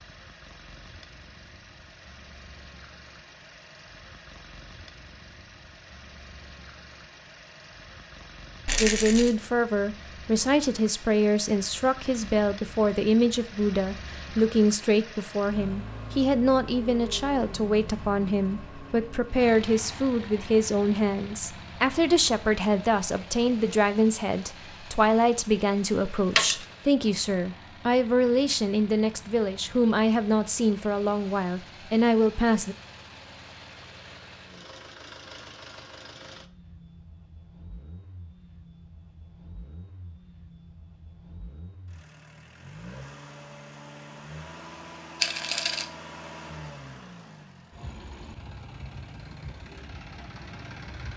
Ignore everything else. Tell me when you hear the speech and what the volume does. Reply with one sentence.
The speech can be heard from 8.8 to 32.8 s, at a steady volume.